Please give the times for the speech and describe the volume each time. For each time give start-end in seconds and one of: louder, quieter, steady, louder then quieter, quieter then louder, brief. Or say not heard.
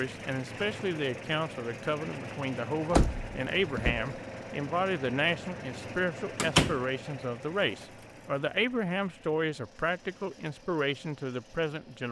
0.0-12.0 steady.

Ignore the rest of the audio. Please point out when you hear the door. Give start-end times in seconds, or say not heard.
2.9-4.0, 6.3-6.8.